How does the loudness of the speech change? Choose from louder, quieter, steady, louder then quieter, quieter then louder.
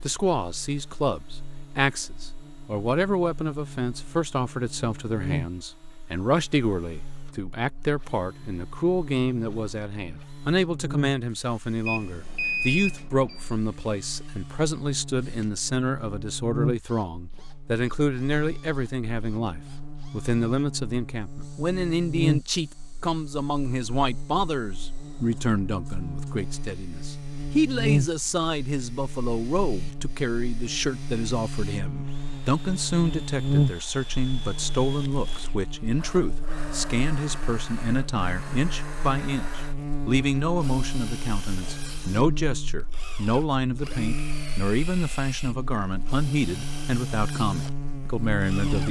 steady.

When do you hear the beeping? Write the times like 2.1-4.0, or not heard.
11.8-13.5.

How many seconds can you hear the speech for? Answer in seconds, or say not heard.
49 s.